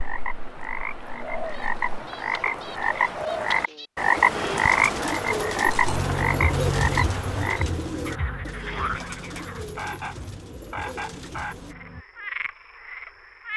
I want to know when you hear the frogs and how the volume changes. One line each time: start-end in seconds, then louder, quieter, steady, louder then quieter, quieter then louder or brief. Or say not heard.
0.0-13.5 louder then quieter.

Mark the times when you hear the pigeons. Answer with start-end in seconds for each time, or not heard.
1.3-11.8.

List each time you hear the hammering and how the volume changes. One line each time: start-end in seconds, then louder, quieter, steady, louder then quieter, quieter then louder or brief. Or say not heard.
not heard.